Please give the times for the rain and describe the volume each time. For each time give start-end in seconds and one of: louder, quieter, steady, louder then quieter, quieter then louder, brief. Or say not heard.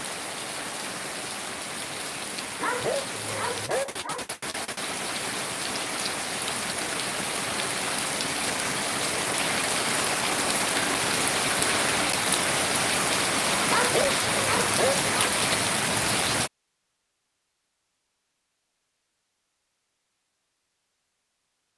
0.0-16.5 louder.